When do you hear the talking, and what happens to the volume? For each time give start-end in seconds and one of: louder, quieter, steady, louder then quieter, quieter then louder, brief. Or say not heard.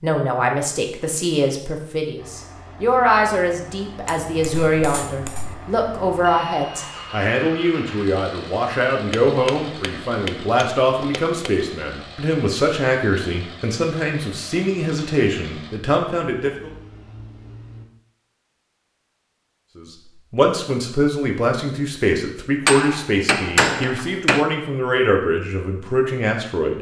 0.0-16.7 steady
19.8-26.7 steady.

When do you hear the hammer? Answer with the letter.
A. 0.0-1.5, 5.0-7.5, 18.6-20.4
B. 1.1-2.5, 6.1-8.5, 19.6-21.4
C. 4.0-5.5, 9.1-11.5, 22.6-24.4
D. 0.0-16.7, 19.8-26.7
C.